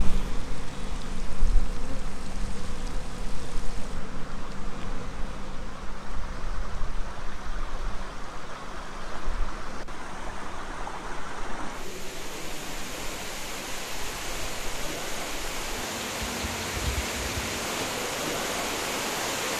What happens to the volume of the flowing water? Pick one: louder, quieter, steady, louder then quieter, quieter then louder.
louder.